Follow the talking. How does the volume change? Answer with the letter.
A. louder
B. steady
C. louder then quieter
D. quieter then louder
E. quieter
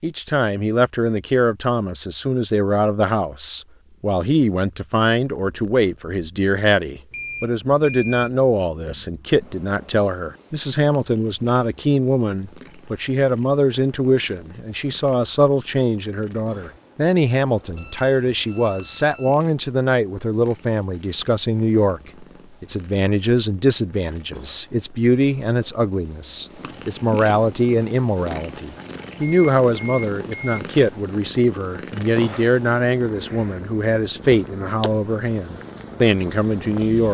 B.